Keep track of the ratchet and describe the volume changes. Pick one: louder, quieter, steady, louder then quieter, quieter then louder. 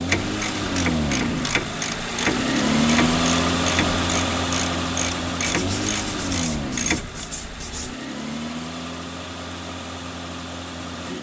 steady.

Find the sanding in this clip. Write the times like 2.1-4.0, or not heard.
5.4-8.0.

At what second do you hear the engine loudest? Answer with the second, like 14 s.
3 s.